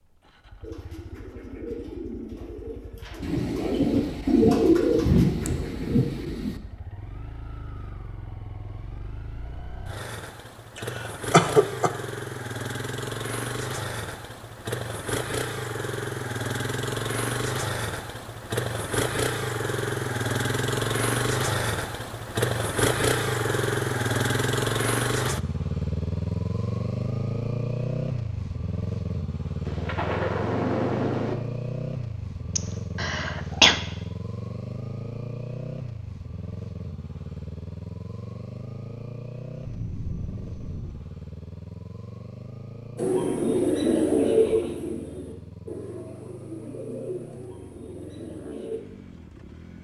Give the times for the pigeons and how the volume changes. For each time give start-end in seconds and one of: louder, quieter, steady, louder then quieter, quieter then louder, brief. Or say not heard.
0.6-6.5 louder then quieter
43.0-48.8 quieter.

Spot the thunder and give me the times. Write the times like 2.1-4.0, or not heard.
3.2-6.6, 29.6-31.4, 39.5-41.0.